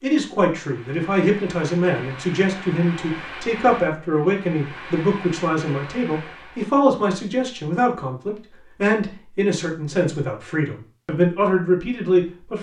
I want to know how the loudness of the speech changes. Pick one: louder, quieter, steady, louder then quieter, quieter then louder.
steady.